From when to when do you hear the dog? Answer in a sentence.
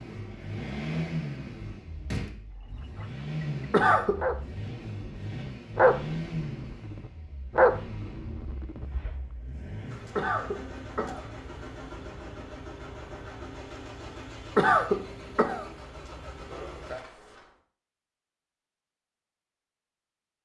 You can hear the dog from 3.0 to 9.1 s.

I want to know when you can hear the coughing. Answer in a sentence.
The coughing can be heard from 3.7 to 4.2 s, from 10.2 to 11.2 s and from 14.6 to 15.7 s.